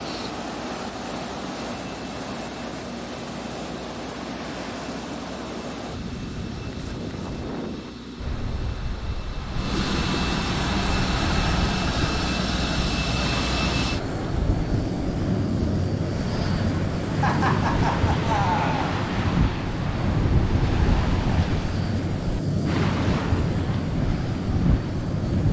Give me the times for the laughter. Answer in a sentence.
The laughter can be heard from 17.2 to 18.9 s.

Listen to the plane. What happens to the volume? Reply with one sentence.
The loudness of the plane goes up.